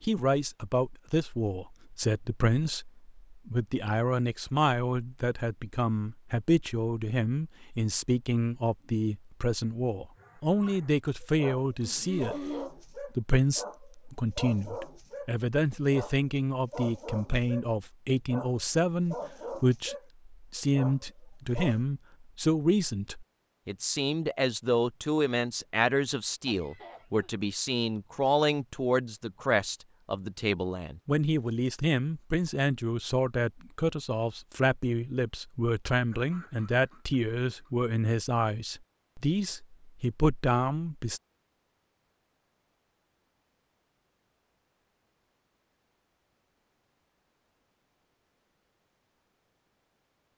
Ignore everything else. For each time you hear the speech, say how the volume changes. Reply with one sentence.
The speech can be heard from 0.0 to 41.2 s, at a steady volume.